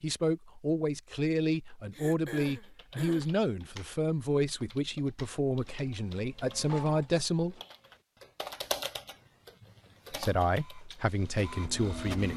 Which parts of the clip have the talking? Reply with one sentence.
The talking can be heard from 0.0 to 7.5 s and from 10.1 to 12.3 s.